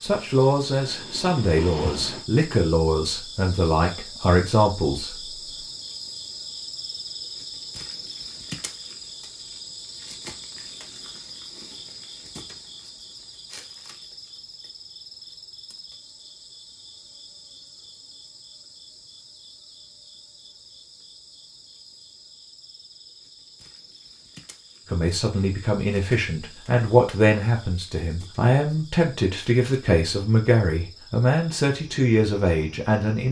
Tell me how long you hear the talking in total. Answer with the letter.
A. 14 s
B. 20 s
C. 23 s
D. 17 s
A.